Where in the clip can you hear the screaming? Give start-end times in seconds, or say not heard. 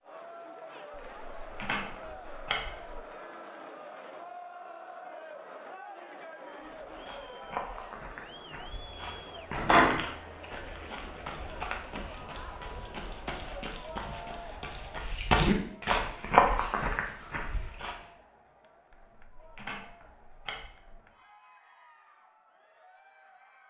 not heard.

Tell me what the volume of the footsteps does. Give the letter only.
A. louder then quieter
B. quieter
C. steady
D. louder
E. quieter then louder
D.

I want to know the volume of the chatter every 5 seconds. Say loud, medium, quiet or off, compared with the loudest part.
loud, loud, loud, quiet, quiet.